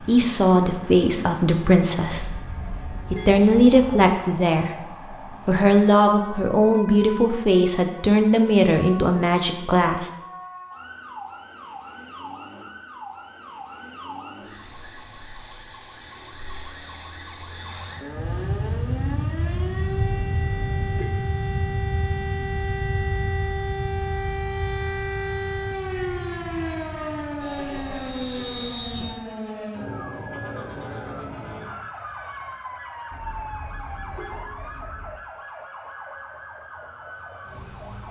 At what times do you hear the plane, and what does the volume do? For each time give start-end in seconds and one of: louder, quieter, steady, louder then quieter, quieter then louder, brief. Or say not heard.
18.1-29.2 quieter.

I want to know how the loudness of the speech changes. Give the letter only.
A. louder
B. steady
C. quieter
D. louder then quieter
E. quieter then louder
B.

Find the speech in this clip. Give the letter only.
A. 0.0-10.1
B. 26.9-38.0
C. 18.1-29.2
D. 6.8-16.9
A.